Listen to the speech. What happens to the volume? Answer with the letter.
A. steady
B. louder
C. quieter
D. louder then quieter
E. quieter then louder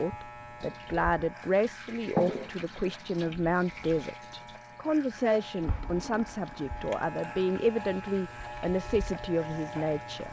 A.